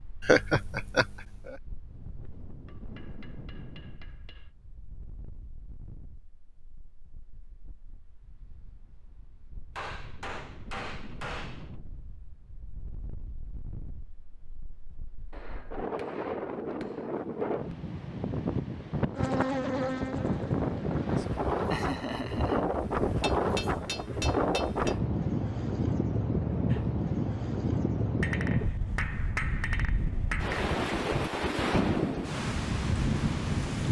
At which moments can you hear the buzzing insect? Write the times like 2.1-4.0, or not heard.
19.1-21.7.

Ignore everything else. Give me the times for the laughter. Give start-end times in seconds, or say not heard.
0.2-1.6, 21.5-22.6.